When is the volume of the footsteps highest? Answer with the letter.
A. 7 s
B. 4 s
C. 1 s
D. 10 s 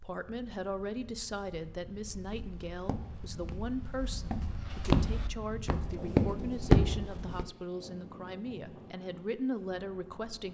A.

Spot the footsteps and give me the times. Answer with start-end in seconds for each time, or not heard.
2.0-7.5.